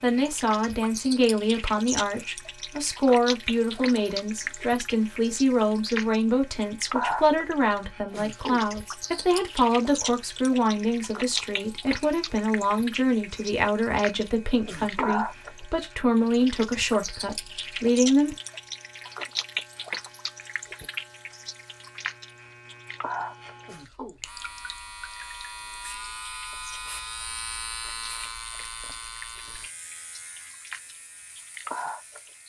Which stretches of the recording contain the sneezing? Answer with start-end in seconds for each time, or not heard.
8.1-8.7, 14.7-15.2, 23.6-24.2.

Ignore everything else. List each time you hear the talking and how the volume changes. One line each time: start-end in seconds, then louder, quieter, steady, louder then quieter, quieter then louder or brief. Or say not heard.
0.0-18.4 steady.